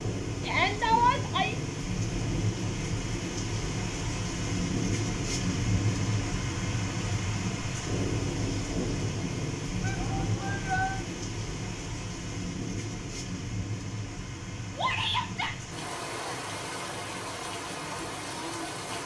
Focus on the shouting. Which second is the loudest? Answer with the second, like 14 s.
1 s.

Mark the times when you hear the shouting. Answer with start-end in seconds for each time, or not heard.
0.4-1.6, 9.8-11.0, 14.8-15.6.